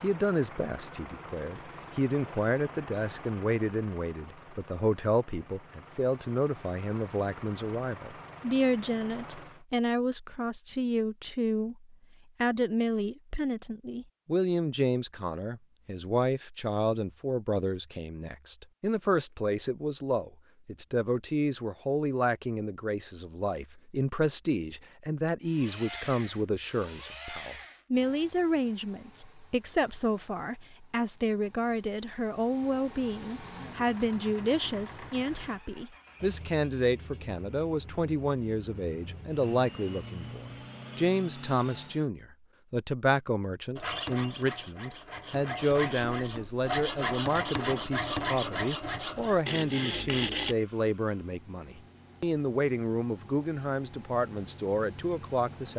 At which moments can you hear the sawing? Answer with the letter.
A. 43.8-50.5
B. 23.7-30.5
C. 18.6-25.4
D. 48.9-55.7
A.